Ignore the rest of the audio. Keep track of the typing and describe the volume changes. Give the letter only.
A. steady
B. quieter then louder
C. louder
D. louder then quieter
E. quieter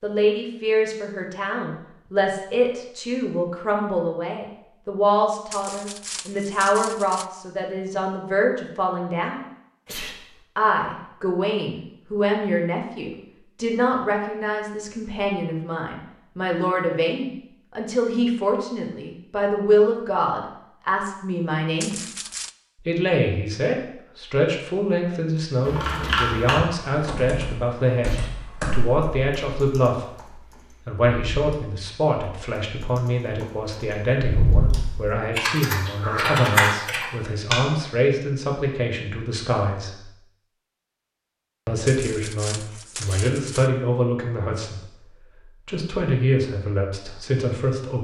B.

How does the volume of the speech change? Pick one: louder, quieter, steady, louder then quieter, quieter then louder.
steady.